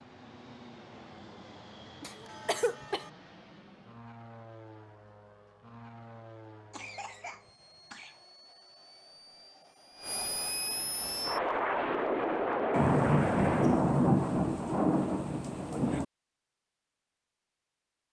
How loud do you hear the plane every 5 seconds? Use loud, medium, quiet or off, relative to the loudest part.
quiet, quiet, loud, off.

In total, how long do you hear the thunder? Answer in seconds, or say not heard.
3 s.